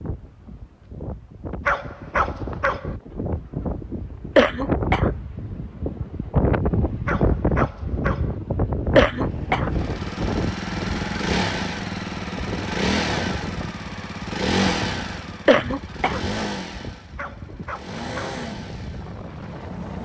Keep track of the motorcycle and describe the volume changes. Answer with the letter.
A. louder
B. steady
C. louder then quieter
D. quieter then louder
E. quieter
E.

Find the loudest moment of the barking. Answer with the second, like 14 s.
2 s.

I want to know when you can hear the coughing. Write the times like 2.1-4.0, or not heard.
4.3-5.1, 8.9-9.7, 15.4-16.2.